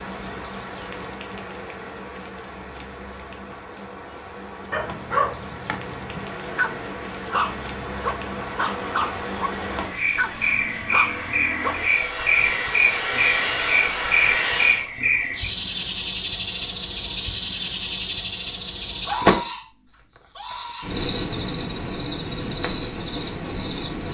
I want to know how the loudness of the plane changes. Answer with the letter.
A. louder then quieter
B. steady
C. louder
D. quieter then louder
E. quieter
C.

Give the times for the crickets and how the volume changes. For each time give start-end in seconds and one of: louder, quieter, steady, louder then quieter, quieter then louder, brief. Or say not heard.
0.0-24.1 louder.